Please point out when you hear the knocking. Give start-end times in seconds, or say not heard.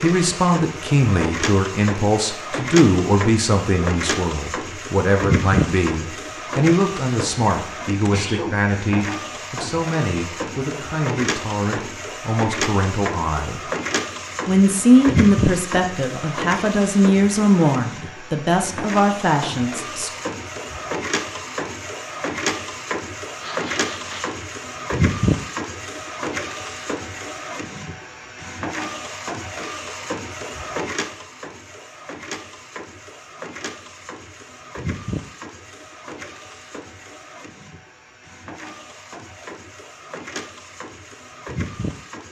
not heard.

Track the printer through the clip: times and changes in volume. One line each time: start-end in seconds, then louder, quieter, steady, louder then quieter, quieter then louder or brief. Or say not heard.
0.0-42.2 quieter.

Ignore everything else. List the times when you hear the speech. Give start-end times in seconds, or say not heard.
0.0-13.6, 14.4-20.1.